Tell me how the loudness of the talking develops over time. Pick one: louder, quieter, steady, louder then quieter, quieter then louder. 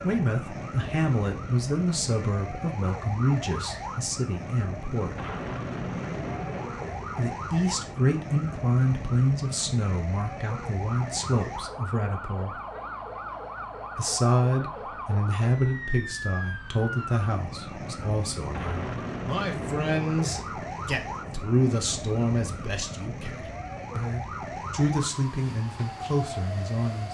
steady.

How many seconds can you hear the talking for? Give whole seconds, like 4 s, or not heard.
24 s.